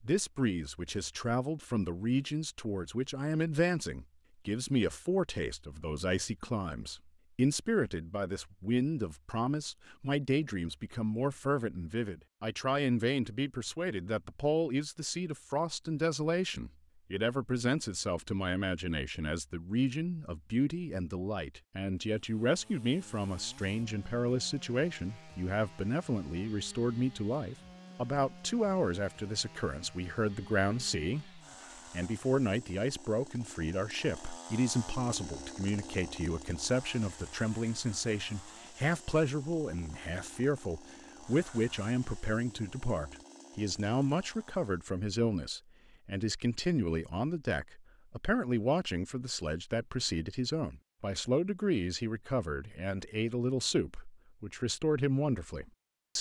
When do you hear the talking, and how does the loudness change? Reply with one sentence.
You can hear the talking from 0.0 to 56.1 s, at a steady volume.